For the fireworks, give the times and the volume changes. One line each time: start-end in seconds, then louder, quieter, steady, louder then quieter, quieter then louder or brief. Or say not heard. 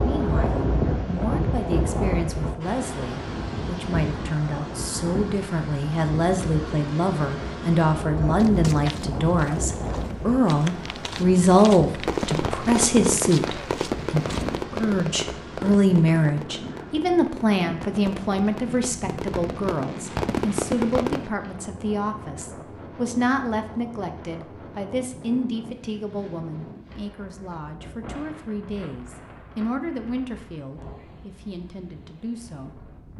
12.1-21.3 quieter then louder.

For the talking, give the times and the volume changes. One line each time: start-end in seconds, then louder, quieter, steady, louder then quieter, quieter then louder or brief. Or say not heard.
0.0-33.1 louder then quieter.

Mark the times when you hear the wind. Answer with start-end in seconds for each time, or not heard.
0.0-33.1.